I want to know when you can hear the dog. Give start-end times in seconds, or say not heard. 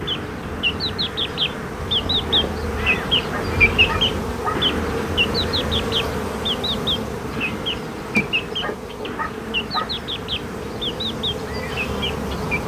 3.3-4.6, 8.6-9.9.